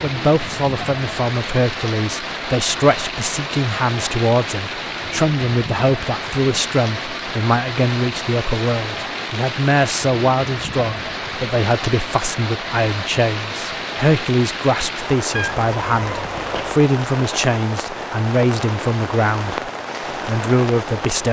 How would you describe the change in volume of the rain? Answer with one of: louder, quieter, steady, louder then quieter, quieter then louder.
steady.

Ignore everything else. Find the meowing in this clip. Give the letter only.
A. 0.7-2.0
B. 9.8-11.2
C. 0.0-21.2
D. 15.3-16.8
D.